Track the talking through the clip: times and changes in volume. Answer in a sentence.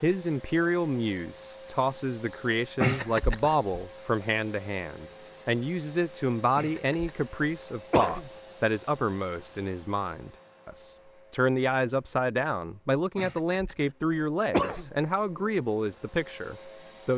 You can hear the talking from 0.0 to 17.1 s, at a steady volume.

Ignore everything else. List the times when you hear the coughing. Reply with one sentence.
You can hear the coughing from 2.8 to 3.8 s, from 6.5 to 7.1 s, from 7.9 to 8.3 s, from 13.2 to 13.8 s and from 14.5 to 14.9 s.